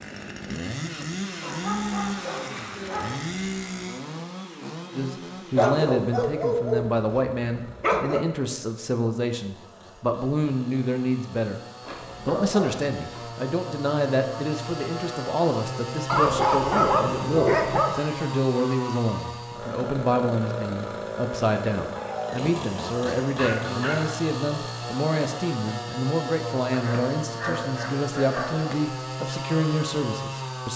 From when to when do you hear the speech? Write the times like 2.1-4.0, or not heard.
5.0-11.6, 12.2-30.7.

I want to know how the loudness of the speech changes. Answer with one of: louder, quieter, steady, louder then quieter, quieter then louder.
steady.